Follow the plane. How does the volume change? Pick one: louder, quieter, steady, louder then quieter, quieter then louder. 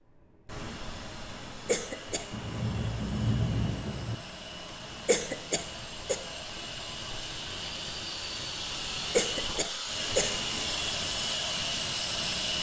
louder.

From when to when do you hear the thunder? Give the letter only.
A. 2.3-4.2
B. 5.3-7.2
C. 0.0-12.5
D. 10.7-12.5
A.